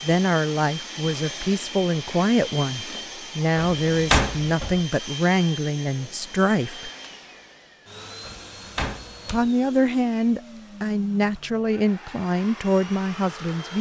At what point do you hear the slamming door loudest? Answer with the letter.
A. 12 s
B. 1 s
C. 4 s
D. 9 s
C.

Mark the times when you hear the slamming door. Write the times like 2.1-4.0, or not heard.
3.5-4.8, 8.2-9.5.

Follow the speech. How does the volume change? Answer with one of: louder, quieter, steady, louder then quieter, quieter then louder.
steady.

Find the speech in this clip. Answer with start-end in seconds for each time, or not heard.
0.0-6.9, 9.3-13.7.